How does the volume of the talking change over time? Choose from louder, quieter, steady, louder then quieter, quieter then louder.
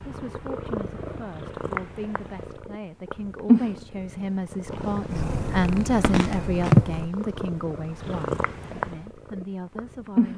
louder then quieter.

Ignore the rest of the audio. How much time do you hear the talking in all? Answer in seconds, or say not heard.
10 s.